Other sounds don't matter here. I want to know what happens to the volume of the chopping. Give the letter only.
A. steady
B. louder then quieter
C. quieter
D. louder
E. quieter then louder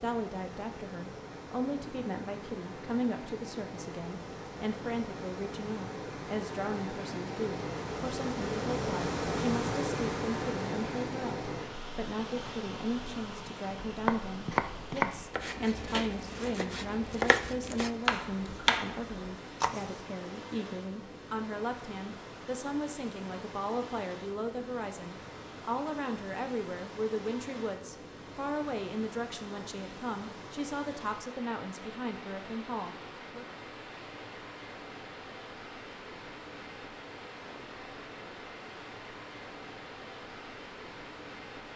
E.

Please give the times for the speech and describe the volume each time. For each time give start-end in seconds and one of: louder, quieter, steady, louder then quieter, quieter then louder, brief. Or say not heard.
0.0-33.5 steady.